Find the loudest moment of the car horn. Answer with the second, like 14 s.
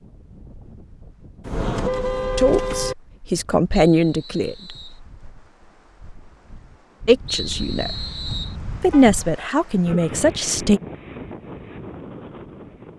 2 s.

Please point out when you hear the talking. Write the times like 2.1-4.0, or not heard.
2.4-4.8, 7.0-7.9, 8.8-10.8.